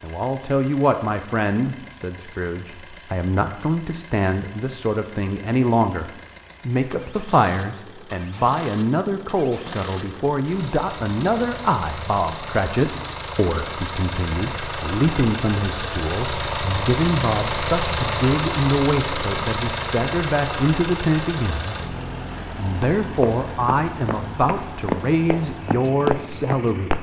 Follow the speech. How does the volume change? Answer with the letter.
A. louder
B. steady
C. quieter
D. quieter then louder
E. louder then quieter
B.